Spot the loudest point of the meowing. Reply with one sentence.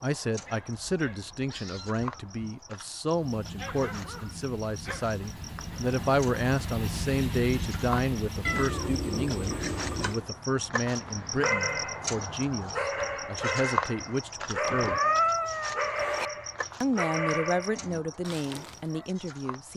The loudest moment of the meowing is at 15 seconds.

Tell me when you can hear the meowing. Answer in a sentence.
You can hear the meowing from 0.7 to 2.4 s, from 8.4 to 10.2 s and from 14.7 to 16.3 s.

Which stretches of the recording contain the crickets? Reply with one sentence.
You can hear the crickets from 0.0 to 19.7 s.